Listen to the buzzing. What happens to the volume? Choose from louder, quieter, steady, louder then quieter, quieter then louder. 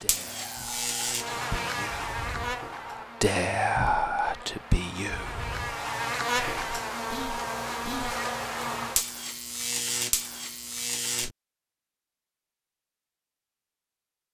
quieter then louder.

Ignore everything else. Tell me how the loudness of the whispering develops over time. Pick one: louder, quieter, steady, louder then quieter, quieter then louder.
louder then quieter.